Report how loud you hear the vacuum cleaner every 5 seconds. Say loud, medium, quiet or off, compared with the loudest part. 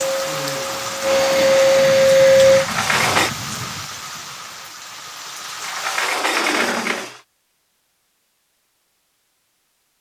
loud, off.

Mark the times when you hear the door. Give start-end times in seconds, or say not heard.
2.5-3.3, 5.6-7.2.